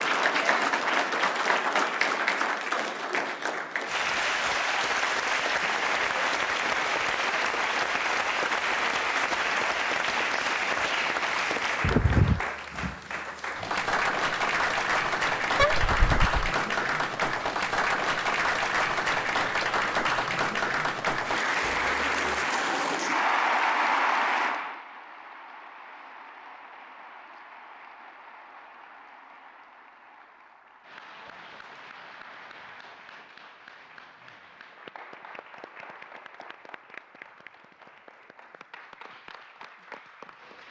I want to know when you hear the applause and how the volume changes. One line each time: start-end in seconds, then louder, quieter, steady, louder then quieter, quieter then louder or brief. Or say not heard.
0.0-40.6 quieter.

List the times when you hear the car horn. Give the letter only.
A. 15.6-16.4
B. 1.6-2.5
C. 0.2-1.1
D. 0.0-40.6
A.